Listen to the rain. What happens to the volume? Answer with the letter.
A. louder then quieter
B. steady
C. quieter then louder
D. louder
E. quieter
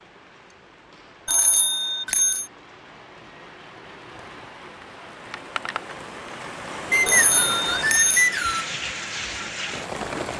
D.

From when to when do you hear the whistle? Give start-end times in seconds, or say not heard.
6.9-8.7.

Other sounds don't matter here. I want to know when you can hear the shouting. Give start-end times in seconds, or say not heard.
not heard.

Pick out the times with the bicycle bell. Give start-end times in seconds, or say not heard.
1.2-2.5, 7.0-8.3.